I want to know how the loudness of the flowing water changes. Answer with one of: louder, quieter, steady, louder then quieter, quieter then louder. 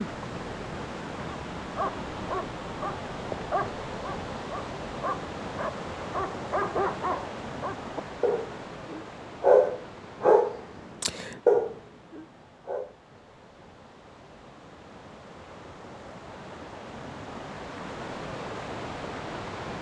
quieter then louder.